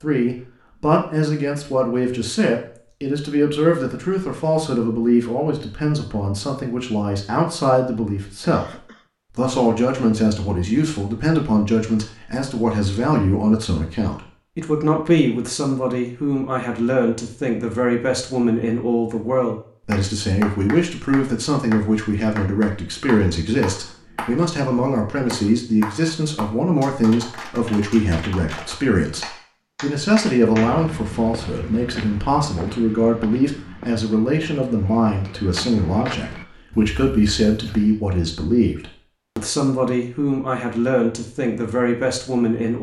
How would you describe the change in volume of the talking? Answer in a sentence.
The volume of the talking stays about the same.